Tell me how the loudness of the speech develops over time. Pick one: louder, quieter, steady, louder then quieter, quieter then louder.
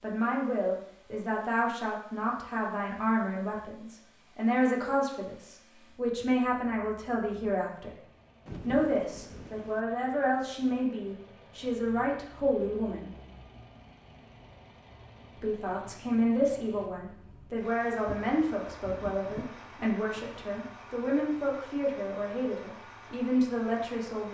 steady.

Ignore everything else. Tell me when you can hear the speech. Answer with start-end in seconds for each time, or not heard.
0.0-7.9, 8.7-13.1, 15.4-24.2.